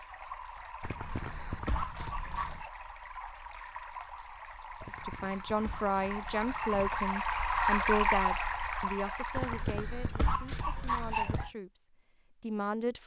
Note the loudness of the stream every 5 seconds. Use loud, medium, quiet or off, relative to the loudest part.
quiet, loud, off.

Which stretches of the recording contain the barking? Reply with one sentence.
The barking can be heard from 0.8 to 2.7 s, from 4.8 to 7.1 s and from 9.3 to 11.5 s.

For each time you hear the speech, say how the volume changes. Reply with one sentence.
The speech can be heard from 5.0 to 13.0 s, getting quieter.